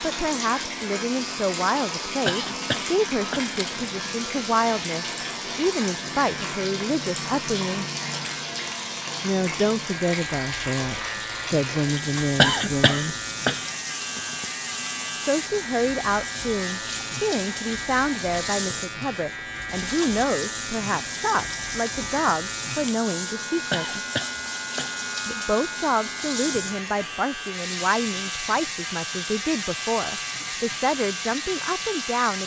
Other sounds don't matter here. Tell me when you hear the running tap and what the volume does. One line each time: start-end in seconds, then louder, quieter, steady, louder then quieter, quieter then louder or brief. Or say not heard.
0.0-32.4 steady.